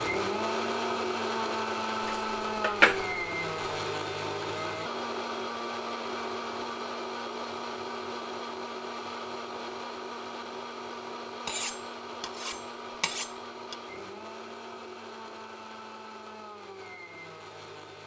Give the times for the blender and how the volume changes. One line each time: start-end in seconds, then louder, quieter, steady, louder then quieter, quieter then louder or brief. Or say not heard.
0.0-18.0 quieter.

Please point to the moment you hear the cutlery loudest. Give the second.
3 s.